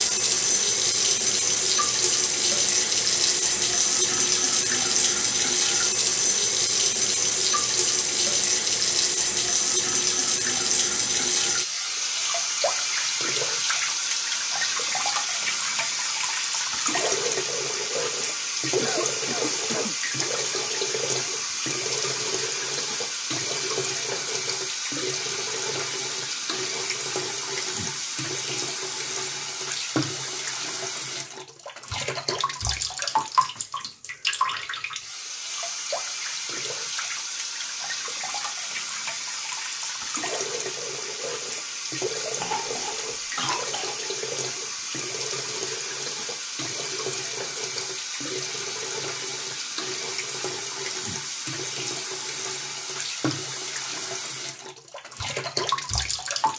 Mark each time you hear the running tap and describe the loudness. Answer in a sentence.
You can hear the running tap from 0.0 to 56.5 s, getting quieter.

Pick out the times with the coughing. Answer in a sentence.
You can hear the coughing from 18.8 to 19.9 s and from 42.4 to 44.0 s.